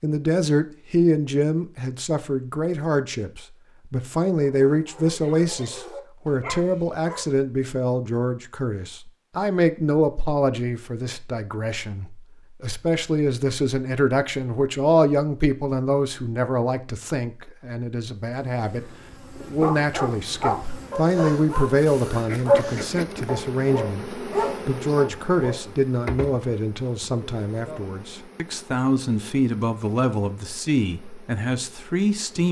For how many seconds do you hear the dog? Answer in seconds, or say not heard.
9 s.